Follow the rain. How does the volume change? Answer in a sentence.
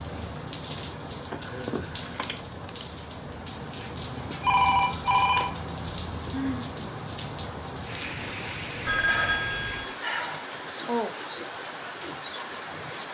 The loudness of the rain stays about the same.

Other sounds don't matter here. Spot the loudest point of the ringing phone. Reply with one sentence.
The volume of the ringing phone peaks at 5 seconds.